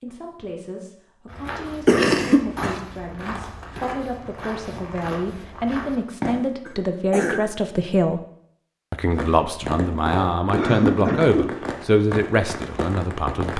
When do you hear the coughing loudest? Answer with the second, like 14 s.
2 s.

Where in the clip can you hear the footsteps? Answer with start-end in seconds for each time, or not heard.
1.2-6.5.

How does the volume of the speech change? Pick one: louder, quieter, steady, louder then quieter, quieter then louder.
louder.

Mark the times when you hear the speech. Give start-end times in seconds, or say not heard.
0.0-8.2, 8.9-13.5.